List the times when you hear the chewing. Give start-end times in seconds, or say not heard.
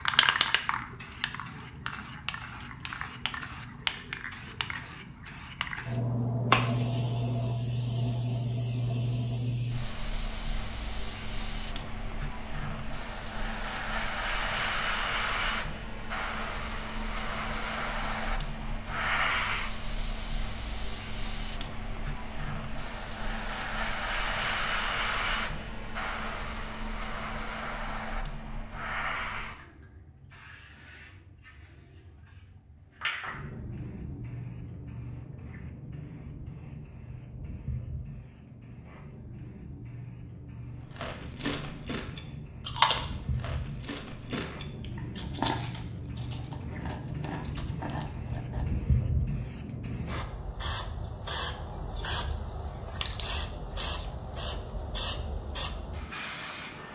41.0-48.9.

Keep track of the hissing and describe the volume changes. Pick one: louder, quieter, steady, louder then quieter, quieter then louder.
quieter then louder.